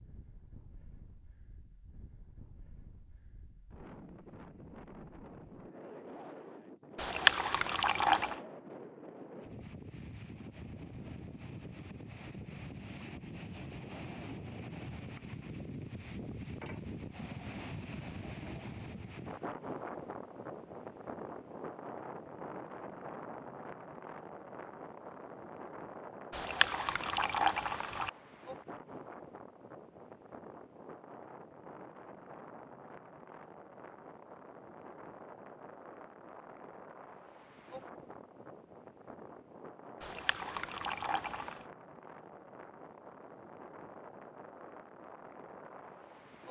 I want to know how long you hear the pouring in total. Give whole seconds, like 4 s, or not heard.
5 s.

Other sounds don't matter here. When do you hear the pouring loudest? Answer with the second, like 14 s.
7 s.